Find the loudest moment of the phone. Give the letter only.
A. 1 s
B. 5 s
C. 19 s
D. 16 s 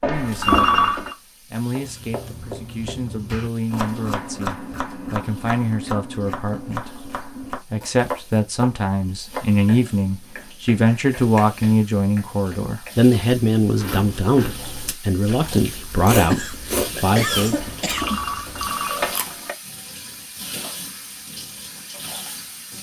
A.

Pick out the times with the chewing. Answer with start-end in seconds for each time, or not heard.
13.7-19.3.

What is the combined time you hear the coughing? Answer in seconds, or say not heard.
2 s.